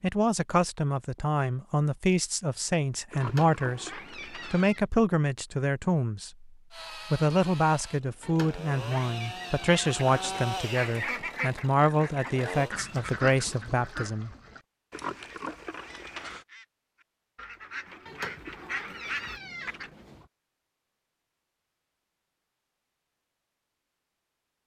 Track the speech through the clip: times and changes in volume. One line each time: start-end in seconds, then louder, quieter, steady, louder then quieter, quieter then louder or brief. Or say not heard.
0.0-14.3 steady.